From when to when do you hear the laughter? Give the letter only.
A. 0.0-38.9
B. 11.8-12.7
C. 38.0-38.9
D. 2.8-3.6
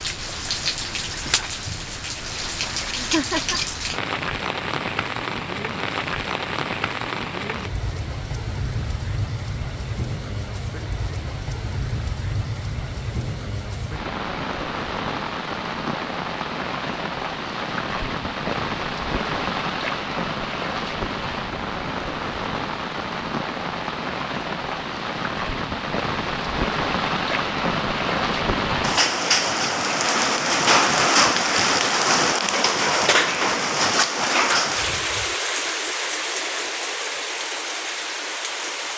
D.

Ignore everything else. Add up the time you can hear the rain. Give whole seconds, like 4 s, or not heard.
39 s.